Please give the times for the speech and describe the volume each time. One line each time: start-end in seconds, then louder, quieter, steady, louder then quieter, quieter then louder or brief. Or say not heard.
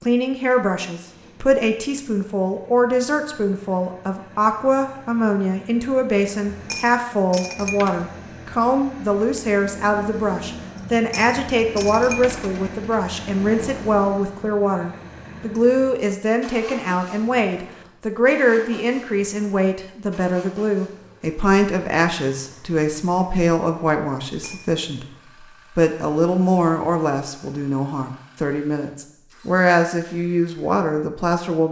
0.0-31.6 steady.